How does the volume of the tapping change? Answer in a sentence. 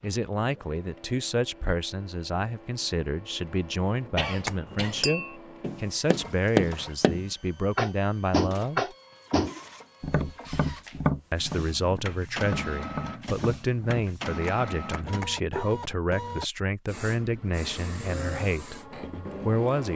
The loudness of the tapping goes down.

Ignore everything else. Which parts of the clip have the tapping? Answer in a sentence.
The tapping can be heard from 4.5 to 15.8 s.